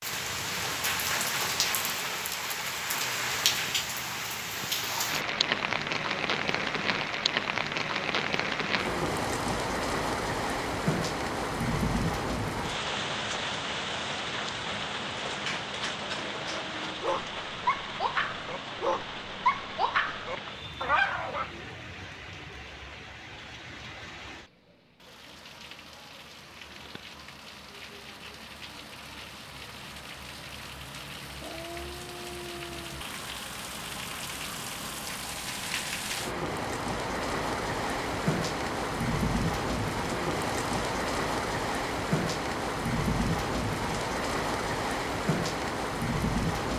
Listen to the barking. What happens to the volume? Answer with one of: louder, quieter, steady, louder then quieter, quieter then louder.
louder.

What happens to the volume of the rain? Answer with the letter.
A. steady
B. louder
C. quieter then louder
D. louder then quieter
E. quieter
C.